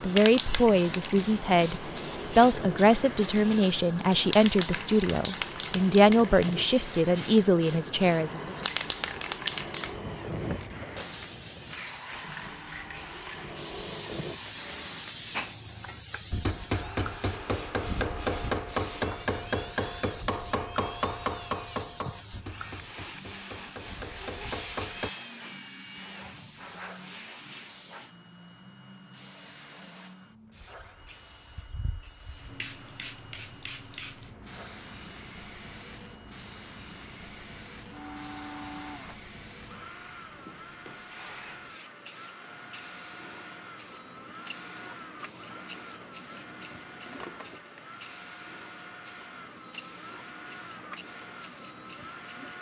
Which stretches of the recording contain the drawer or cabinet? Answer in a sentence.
The drawer or cabinet can be heard from 47.0 to 47.8 s.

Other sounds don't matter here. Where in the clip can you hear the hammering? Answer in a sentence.
You can hear the hammering from 15.3 to 25.1 s.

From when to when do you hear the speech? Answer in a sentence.
You can hear the speech from 0.0 to 8.6 s.